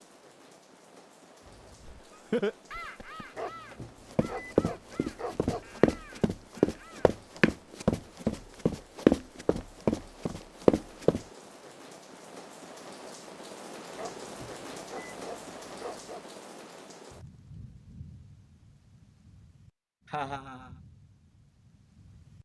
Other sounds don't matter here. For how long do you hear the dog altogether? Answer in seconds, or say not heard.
5 s.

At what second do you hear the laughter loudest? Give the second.
2 s.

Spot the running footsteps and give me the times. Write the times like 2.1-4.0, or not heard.
4.1-11.2.